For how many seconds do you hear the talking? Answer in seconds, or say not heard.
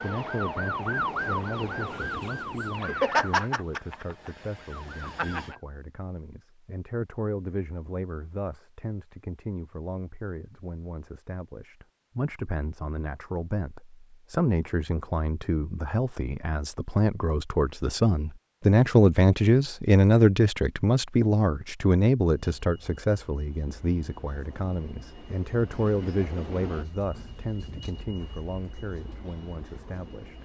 30 s.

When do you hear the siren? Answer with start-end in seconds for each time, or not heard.
0.0-5.5.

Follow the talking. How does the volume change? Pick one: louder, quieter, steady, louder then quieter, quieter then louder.
louder then quieter.